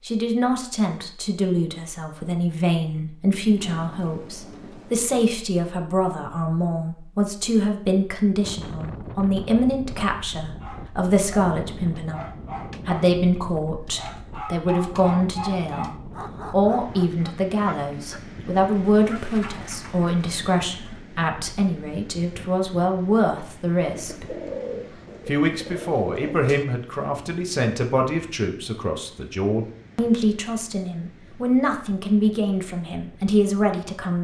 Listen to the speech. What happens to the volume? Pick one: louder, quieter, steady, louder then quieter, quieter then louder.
steady.